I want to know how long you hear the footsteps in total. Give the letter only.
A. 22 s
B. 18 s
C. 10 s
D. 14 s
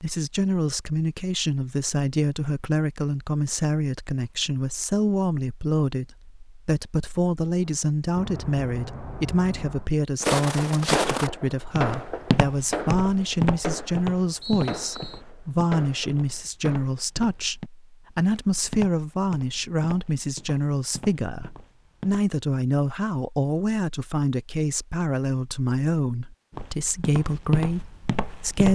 D.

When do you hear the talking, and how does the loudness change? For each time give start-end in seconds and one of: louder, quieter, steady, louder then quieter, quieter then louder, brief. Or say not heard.
0.0-28.6 steady.